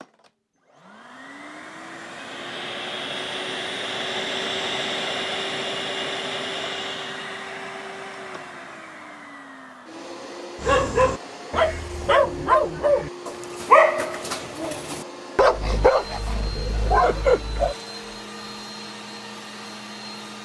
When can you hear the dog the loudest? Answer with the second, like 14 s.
14 s.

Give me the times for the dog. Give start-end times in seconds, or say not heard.
10.6-17.8.